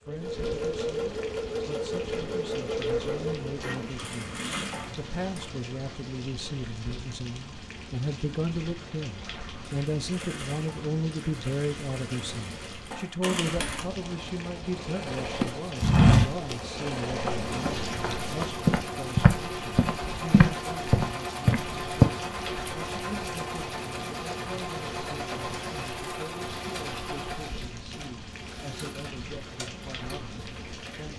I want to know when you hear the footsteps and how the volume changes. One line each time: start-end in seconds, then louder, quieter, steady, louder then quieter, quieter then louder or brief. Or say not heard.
15.4-22.1 quieter then louder.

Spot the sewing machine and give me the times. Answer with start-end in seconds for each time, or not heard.
0.0-5.5, 9.5-31.1.